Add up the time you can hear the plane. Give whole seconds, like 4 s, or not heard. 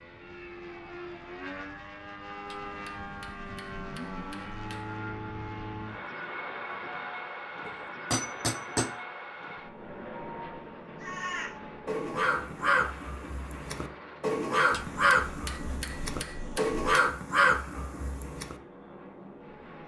20 s.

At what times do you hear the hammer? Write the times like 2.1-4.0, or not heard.
2.5-5.0, 7.7-8.9, 14.7-16.9.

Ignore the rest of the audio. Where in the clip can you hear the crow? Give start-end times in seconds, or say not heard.
11.0-18.6.